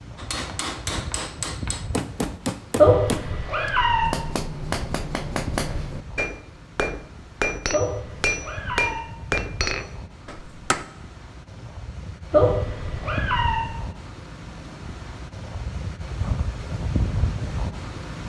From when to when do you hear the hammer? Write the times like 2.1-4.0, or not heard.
0.1-10.8.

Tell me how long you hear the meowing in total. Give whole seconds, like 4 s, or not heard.
4 s.